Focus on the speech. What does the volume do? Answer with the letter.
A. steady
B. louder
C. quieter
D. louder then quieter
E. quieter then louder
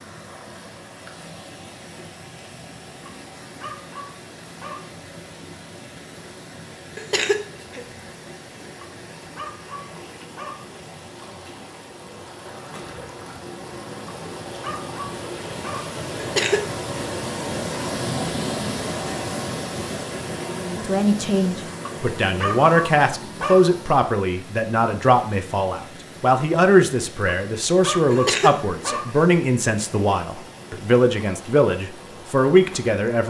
A.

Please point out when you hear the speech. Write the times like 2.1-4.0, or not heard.
20.6-33.2.